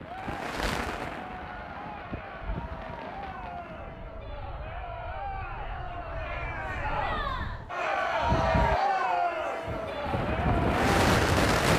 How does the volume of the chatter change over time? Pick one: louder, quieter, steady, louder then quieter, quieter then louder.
louder.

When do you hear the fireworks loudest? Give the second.
11 s.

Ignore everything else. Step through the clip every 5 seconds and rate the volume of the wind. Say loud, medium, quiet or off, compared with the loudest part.
quiet, medium, loud.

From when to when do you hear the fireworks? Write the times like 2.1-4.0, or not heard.
0.0-3.7, 9.7-11.7.